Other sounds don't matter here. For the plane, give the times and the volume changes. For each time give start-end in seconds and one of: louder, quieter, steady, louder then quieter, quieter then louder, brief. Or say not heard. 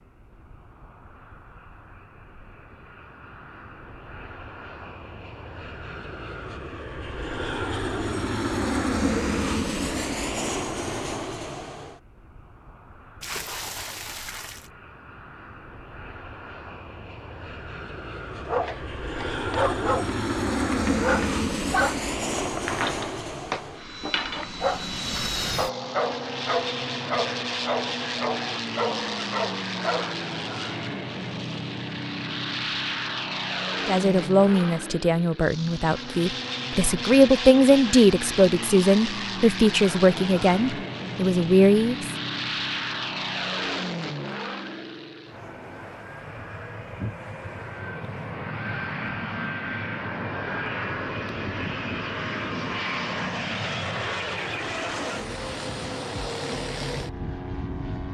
0.1-58.0 steady.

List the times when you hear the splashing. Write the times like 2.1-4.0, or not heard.
13.2-14.7.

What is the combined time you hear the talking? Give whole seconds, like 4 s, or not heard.
8 s.